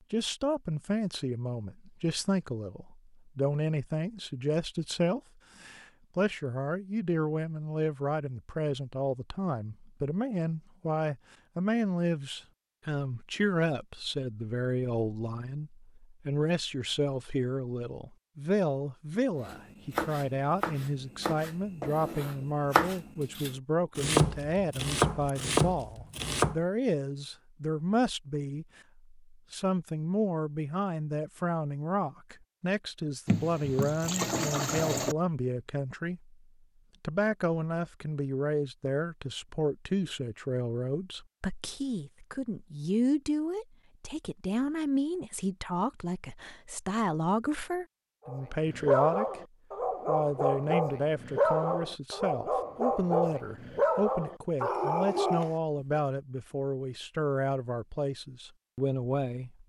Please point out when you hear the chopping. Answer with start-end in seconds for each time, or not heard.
19.4-26.6.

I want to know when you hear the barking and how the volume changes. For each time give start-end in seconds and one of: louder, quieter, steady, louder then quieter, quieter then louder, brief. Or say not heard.
48.2-56.0 steady.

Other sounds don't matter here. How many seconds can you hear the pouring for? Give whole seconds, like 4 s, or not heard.
2 s.